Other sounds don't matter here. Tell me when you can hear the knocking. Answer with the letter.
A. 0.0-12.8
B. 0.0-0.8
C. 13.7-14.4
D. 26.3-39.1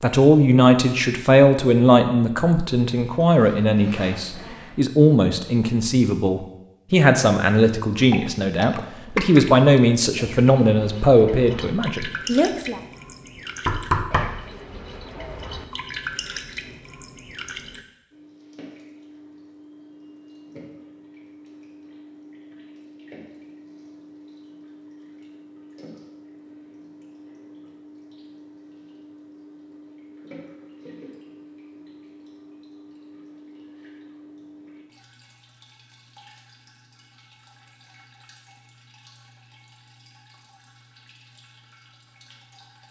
C.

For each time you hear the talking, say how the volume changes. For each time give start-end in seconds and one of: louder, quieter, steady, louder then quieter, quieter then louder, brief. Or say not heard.
0.0-12.8 steady.